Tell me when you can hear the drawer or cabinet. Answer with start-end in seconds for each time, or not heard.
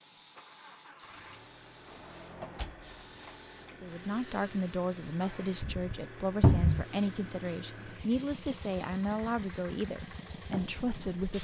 1.9-3.3, 6.4-6.8.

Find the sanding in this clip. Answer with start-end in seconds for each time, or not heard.
not heard.